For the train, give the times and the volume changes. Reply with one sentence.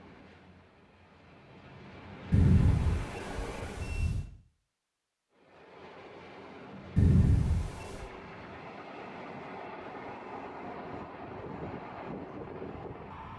The train can be heard from 0.0 to 4.1 s, getting louder; and from 5.3 to 13.3 s, getting louder.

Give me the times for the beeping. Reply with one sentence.
The beeping can be heard from 2.3 to 4.2 s and from 7.0 to 8.1 s.